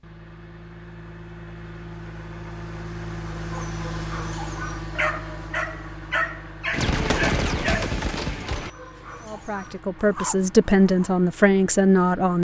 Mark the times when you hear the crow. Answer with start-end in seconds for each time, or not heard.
not heard.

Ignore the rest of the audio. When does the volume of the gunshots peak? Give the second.
7 s.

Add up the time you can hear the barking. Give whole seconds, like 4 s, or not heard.
8 s.